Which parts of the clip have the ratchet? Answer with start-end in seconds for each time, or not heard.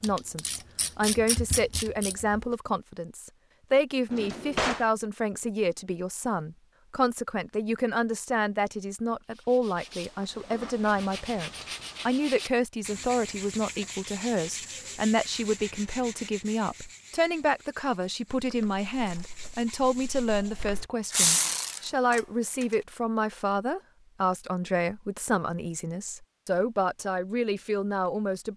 0.0-2.4, 18.4-22.6.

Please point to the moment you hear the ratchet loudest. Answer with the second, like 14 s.
21 s.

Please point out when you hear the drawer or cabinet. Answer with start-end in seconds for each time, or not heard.
4.1-4.9, 21.2-21.8.